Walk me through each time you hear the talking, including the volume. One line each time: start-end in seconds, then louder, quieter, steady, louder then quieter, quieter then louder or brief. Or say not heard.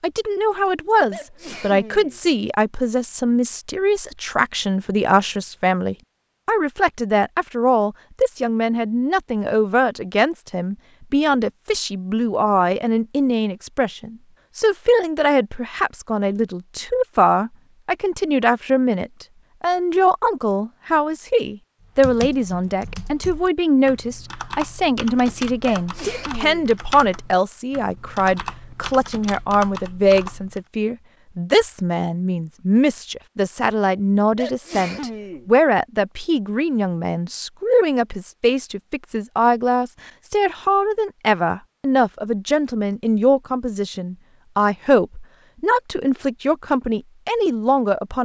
0.0-48.2 steady.